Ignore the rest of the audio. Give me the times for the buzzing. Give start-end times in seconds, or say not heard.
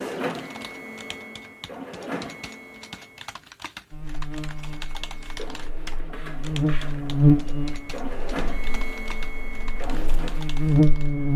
3.9-11.3.